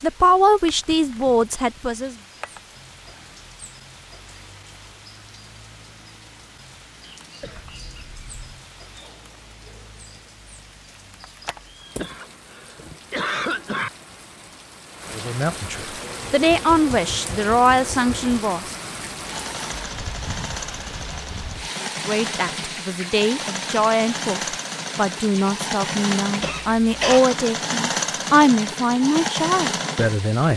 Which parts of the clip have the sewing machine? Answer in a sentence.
You can hear the sewing machine from 16.0 to 30.4 s.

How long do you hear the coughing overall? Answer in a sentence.
You can hear the coughing for 4 seconds altogether.